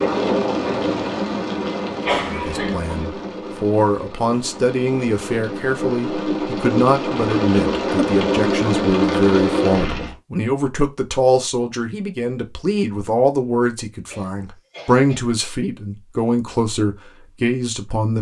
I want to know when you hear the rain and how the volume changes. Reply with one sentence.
The rain can be heard from 0.0 to 10.2 s, getting quieter then louder.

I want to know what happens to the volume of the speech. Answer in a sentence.
The volume of the speech stays about the same.